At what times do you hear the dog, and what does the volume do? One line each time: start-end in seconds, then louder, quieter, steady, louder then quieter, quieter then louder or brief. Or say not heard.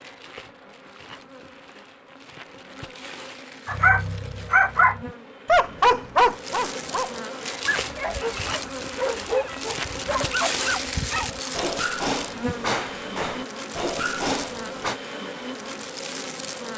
3.6-15.0 quieter.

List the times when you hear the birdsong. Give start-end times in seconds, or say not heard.
not heard.